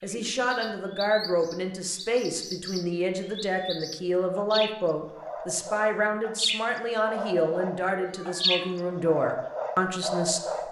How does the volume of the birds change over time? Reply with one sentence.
The volume of the birds goes up.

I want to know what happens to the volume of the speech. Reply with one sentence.
The loudness of the speech stays about the same.